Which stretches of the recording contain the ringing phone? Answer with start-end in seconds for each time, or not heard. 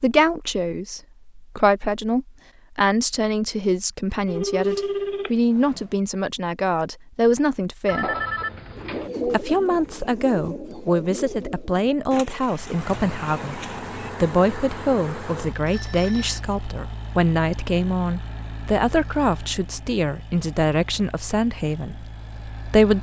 4.2-5.8, 7.8-9.1, 15.7-16.4.